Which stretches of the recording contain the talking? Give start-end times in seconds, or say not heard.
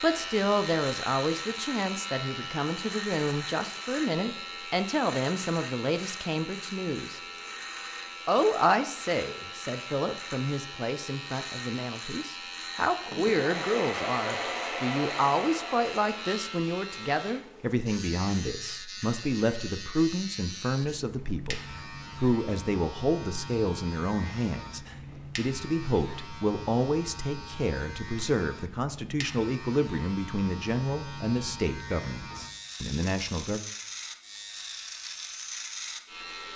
0.0-7.2, 8.2-33.6.